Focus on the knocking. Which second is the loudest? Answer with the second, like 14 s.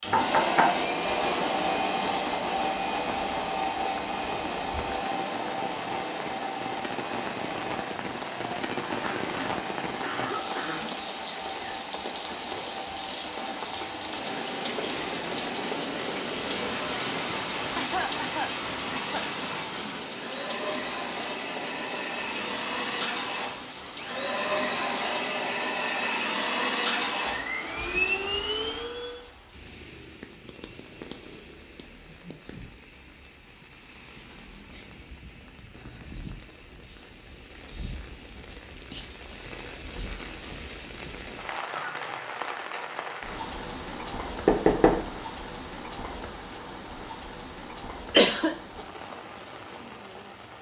45 s.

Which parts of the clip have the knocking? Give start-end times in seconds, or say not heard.
0.1-0.8, 44.5-45.0.